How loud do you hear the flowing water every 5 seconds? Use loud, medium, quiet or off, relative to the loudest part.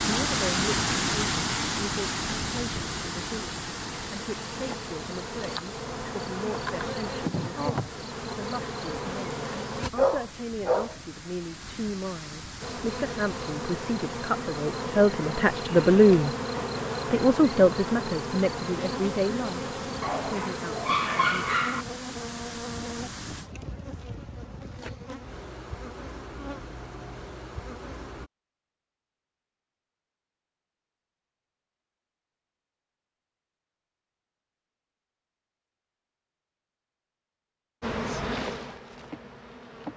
loud, quiet, quiet, quiet, medium, off, off, off.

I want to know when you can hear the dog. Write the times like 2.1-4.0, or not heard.
9.9-10.9, 20.0-21.9.